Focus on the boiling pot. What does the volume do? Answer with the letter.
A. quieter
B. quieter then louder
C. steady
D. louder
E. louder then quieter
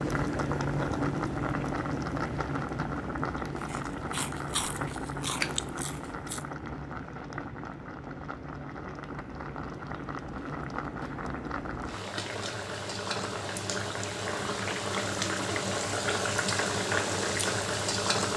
B.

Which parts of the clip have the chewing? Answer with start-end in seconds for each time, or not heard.
3.5-6.5.